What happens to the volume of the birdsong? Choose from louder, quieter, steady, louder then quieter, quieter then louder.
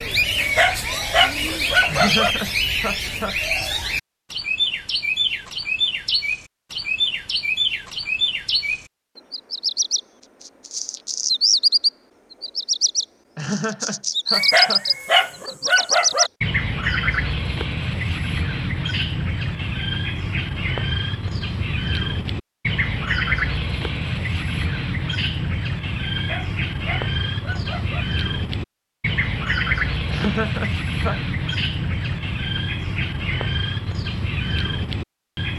steady.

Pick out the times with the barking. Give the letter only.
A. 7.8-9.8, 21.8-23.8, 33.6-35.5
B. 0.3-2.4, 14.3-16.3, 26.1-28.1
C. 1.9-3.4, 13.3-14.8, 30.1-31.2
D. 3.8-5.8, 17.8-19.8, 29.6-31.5
B.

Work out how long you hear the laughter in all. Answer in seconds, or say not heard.
4 s.